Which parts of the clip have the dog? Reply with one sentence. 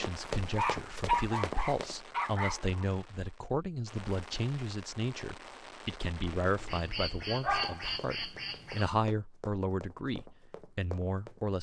You can hear the dog from 0.4 to 2.9 s and from 7.4 to 8.8 s.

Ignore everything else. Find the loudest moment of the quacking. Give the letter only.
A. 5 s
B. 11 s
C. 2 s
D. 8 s
D.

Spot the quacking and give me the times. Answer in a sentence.
You can hear the quacking from 6.5 to 8.9 s.